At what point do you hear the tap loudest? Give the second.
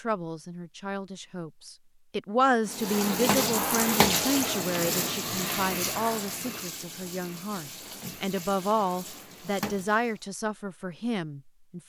4 s.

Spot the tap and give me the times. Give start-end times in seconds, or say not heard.
2.6-10.2.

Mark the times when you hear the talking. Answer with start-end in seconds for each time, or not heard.
0.0-11.8.